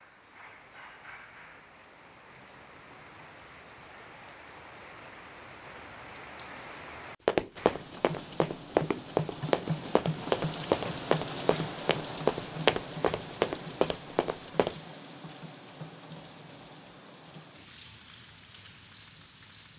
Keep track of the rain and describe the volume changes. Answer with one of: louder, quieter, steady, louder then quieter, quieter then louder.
louder then quieter.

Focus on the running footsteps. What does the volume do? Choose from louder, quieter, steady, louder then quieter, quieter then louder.
steady.